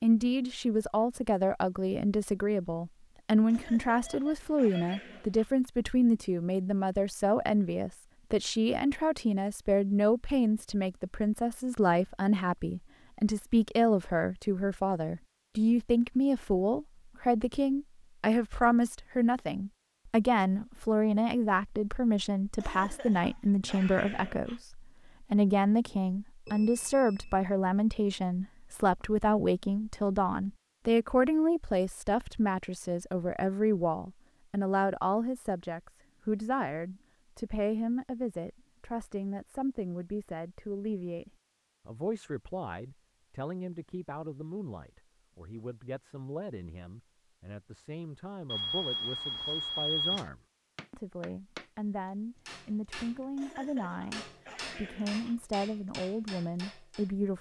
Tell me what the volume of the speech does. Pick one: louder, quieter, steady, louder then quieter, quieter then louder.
quieter.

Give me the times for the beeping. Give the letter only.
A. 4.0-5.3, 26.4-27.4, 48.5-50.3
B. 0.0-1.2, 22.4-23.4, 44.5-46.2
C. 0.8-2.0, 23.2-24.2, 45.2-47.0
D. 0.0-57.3
A.